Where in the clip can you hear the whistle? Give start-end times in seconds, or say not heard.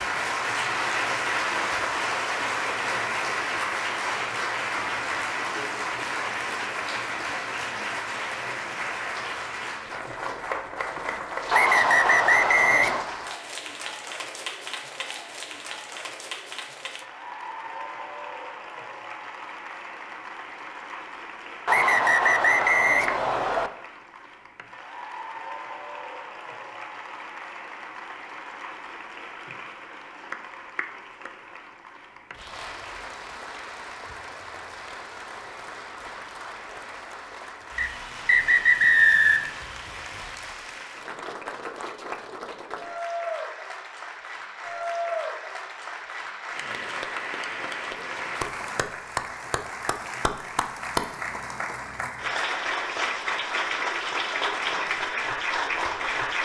11.5-13.1, 21.6-23.7, 37.8-39.6.